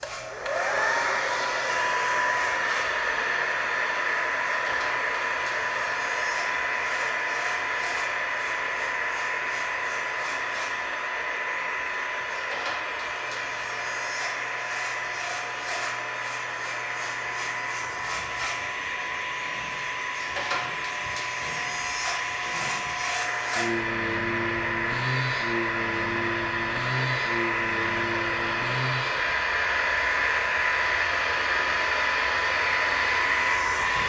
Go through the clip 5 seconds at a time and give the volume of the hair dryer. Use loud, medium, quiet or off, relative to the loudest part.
loud, loud, medium, medium, medium, loud, loud.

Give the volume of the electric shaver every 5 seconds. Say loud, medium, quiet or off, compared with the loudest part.
medium, medium, medium, medium, loud, loud, loud.